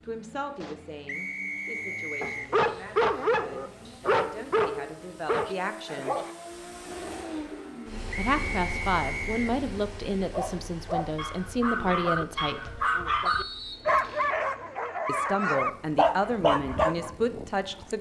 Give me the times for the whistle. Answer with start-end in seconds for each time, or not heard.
1.1-2.5, 8.2-9.6, 13.2-14.3.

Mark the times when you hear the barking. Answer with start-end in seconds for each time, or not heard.
2.2-6.3, 10.3-17.9.